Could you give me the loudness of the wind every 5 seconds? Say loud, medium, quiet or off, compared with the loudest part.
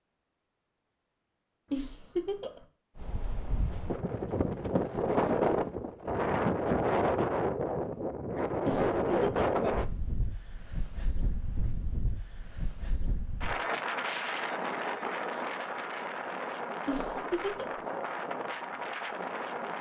medium, loud, medium, medium.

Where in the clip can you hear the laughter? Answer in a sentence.
You can hear the laughter from 1.7 to 2.6 s, from 8.7 to 9.6 s and from 16.9 to 17.8 s.